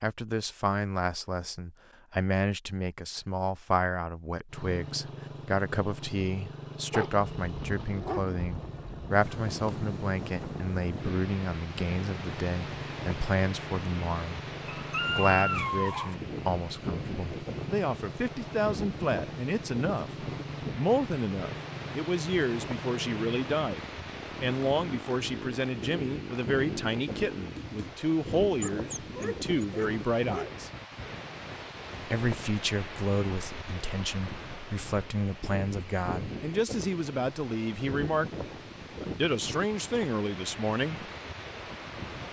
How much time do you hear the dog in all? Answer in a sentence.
You can hear the dog for 5 seconds altogether.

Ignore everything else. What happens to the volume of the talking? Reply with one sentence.
The loudness of the talking stays about the same.